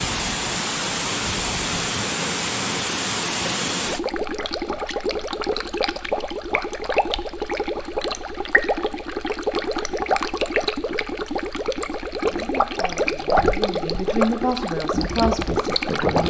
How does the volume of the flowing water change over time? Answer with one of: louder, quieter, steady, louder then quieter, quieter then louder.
steady.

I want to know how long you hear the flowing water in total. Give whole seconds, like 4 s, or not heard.
16 s.